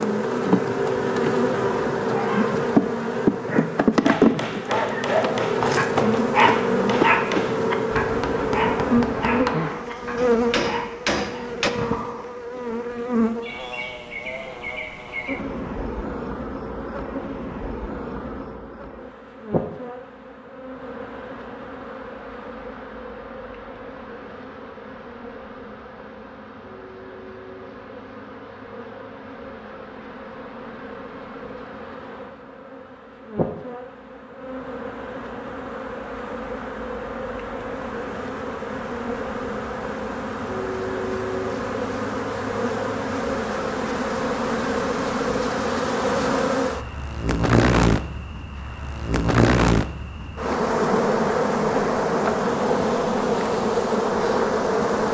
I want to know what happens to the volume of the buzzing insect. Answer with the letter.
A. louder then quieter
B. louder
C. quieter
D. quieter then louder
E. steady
D.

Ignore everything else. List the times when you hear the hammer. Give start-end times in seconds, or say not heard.
4.0-11.7.